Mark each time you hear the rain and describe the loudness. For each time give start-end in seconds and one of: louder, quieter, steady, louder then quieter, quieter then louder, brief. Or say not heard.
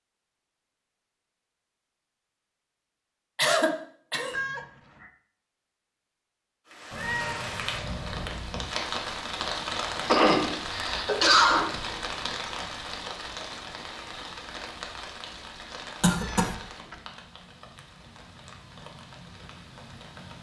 6.7-20.3 quieter.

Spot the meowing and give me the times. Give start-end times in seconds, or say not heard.
4.2-5.1, 6.9-8.4, 16.1-17.0.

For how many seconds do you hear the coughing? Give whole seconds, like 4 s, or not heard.
3 s.